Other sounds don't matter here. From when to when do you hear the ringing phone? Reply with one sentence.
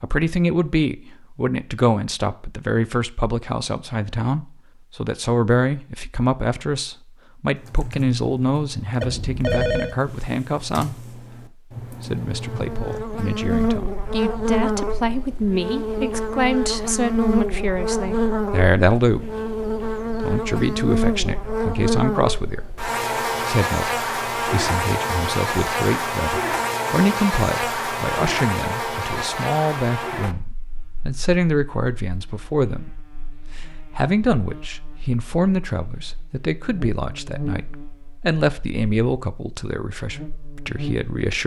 The ringing phone can be heard from 9.0 to 9.9 s.